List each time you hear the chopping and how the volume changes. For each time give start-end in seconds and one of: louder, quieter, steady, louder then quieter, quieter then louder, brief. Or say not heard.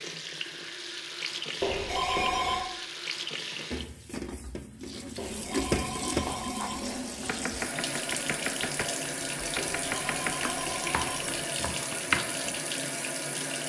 6.2-12.6 louder.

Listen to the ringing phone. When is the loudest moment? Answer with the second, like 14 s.
2 s.